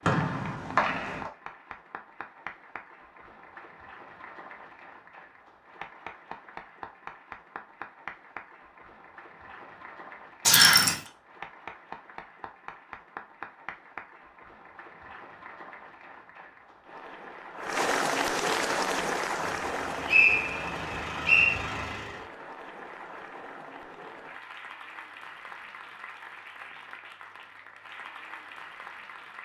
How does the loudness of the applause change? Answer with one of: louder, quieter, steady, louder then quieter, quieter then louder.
louder then quieter.